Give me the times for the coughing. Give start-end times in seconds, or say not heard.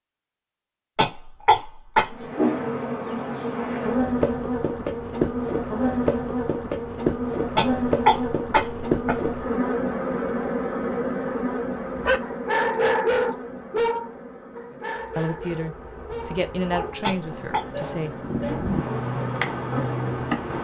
0.9-2.1, 7.5-9.4, 17.0-17.6.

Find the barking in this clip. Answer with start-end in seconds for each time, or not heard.
11.9-18.8.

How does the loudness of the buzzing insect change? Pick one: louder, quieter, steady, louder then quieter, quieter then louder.
quieter then louder.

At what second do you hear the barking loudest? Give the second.
13 s.